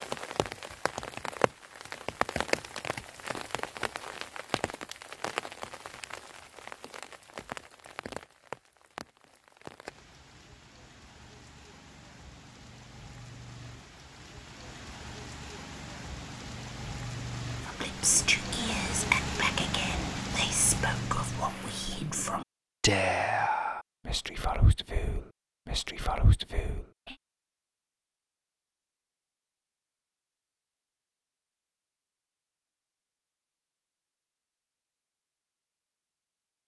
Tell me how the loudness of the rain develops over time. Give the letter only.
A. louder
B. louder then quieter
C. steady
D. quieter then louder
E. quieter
D.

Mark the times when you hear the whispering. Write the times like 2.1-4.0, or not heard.
17.6-27.1.